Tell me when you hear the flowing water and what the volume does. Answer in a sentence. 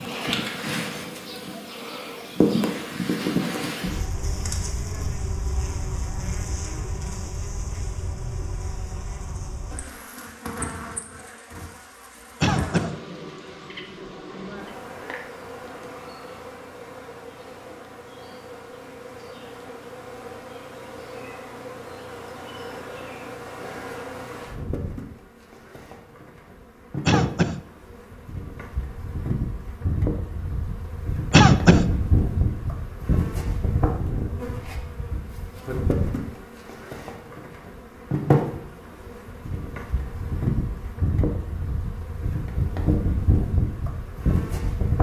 You can't hear the flowing water here.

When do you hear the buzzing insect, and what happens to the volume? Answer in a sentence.
You can hear the buzzing insect from 0.0 to 44.9 s, getting quieter then louder.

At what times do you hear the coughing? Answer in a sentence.
The coughing can be heard from 12.4 to 12.9 s, from 27.1 to 27.6 s and from 31.3 to 31.9 s.